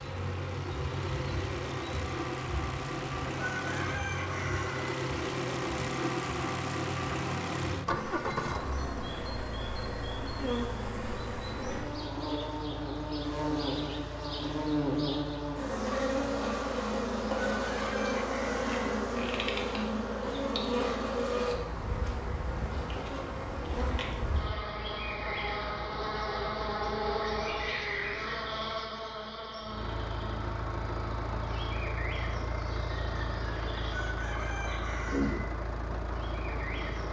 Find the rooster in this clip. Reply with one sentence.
You can hear the rooster from 3.5 to 5.0 s, from 17.6 to 18.8 s and from 33.9 to 35.5 s.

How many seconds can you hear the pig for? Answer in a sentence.
The pig can't be heard in this clip.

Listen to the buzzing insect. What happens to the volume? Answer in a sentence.
The loudness of the buzzing insect goes up, then down.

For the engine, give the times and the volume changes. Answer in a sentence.
The engine can be heard from 0.0 to 27.8 s, getting quieter; and from 29.6 to 37.0 s, at a steady volume.